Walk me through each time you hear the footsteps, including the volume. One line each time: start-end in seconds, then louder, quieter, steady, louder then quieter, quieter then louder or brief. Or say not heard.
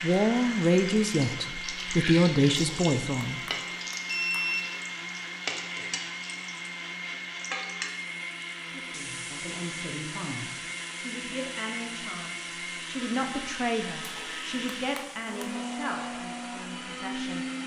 not heard.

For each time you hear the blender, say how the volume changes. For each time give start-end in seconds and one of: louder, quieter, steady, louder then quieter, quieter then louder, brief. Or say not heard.
0.0-17.6 steady.